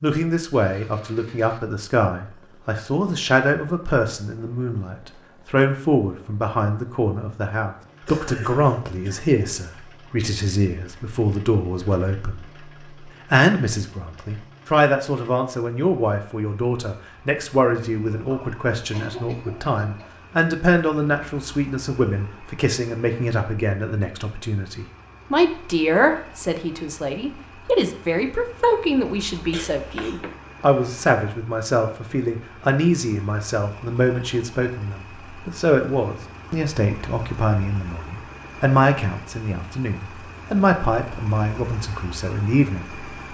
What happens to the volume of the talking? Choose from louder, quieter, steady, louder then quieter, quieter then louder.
steady.